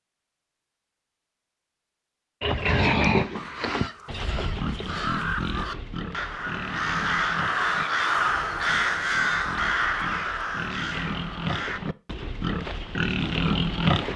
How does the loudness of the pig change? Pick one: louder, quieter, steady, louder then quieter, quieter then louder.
quieter then louder.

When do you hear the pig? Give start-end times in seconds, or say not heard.
2.4-14.1.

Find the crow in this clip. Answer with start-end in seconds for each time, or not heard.
3.4-11.8.